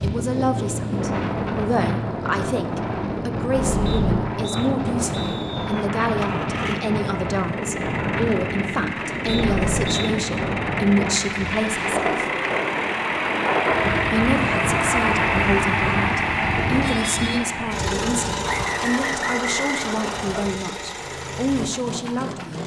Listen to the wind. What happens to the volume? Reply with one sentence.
The loudness of the wind stays about the same.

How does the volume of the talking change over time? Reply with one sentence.
The loudness of the talking stays about the same.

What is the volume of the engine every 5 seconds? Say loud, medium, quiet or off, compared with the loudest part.
medium, medium, loud, loud, medium.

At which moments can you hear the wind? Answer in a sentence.
The wind can be heard from 0.0 to 17.4 s.